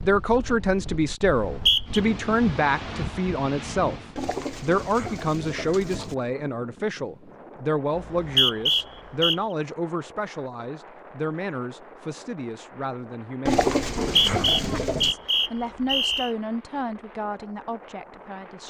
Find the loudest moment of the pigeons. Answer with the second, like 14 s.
14 s.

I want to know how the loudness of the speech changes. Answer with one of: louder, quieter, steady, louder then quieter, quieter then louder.
quieter.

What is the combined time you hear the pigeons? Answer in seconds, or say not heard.
4 s.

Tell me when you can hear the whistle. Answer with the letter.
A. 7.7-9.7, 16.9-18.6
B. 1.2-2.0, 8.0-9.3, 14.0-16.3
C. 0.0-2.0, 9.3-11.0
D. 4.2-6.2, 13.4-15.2
B.